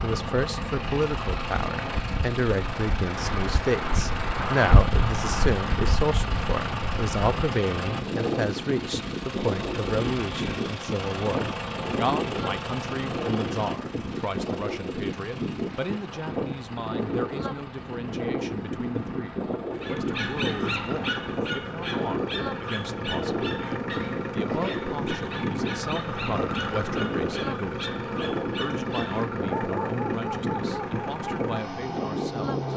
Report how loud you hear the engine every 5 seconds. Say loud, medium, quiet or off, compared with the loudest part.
loud, loud, loud, medium, loud, loud, loud.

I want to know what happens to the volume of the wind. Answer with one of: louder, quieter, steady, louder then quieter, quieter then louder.
steady.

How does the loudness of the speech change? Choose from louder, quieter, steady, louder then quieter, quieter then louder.
quieter.